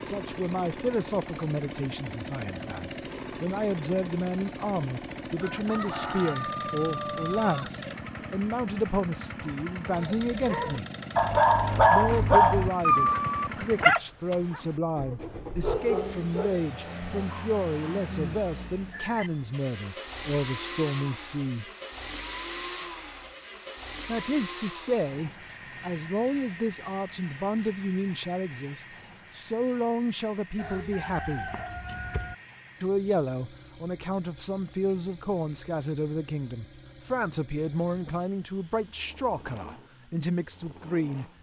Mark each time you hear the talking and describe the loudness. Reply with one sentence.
The talking can be heard from 0.0 to 10.8 s, at a steady volume; from 11.8 to 21.6 s, at a steady volume; from 24.1 to 31.5 s, at a steady volume; and from 32.8 to 41.2 s, at a steady volume.